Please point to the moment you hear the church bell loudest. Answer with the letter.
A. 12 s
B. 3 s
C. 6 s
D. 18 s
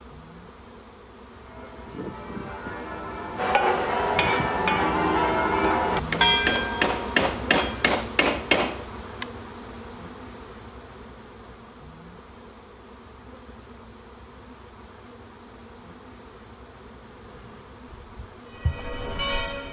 C.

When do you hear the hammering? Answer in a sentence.
The hammering can be heard from 3.4 to 9.2 s.